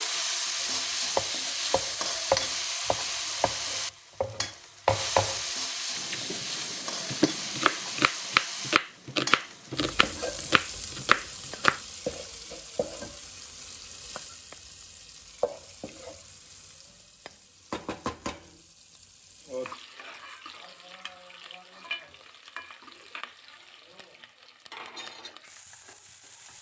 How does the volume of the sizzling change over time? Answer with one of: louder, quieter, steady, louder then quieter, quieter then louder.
quieter.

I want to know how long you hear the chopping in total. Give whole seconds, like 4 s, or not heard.
11 s.